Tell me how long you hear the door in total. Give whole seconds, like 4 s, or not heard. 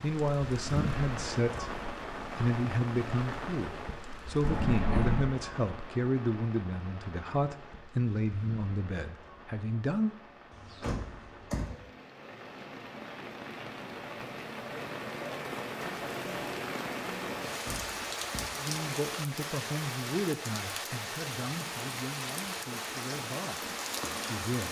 3 s.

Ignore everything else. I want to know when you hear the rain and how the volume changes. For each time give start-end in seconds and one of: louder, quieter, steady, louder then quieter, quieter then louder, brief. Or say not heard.
0.0-24.6 quieter then louder.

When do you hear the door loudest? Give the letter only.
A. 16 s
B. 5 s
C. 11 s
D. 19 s
B.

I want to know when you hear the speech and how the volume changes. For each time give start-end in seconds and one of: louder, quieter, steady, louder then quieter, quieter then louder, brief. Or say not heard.
0.0-10.2 steady
18.6-24.6 quieter.